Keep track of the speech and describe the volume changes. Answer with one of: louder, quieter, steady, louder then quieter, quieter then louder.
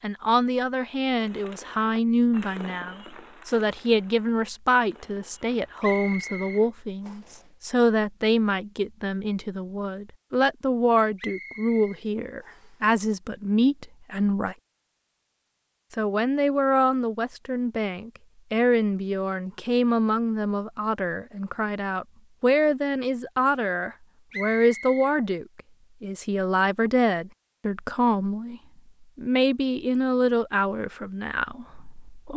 steady.